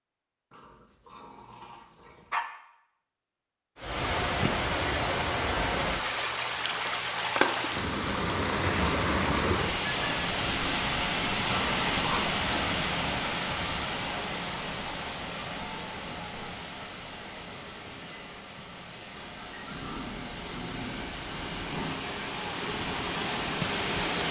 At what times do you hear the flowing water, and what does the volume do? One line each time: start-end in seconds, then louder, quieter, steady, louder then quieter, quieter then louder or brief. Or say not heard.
3.8-24.2 quieter then louder.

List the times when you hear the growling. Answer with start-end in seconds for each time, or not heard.
0.5-2.4, 11.4-12.2, 19.6-22.0.